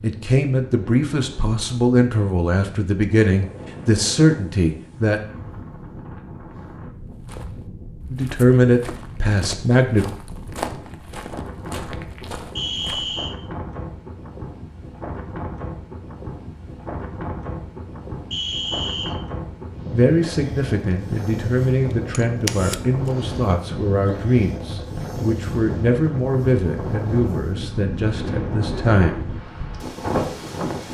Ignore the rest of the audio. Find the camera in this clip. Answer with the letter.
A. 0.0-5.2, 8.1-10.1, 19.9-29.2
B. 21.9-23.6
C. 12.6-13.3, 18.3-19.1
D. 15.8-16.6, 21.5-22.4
B.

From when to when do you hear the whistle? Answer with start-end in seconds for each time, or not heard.
12.6-13.3, 18.3-19.1.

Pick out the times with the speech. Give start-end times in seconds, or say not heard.
0.0-5.2, 8.1-10.1, 19.9-29.2.